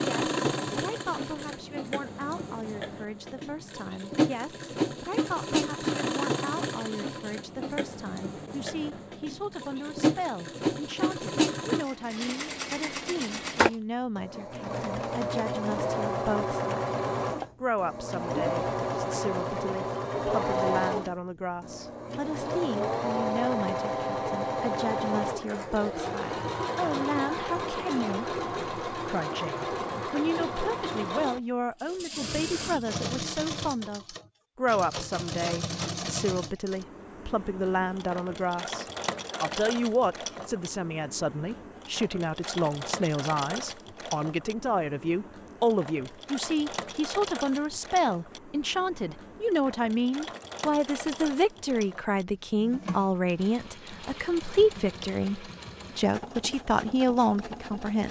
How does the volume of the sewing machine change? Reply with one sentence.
The loudness of the sewing machine goes down.